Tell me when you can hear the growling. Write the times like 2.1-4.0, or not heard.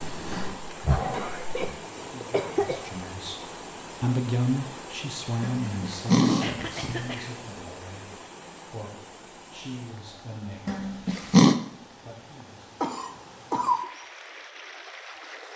0.0-1.8, 5.4-6.5, 10.7-11.6.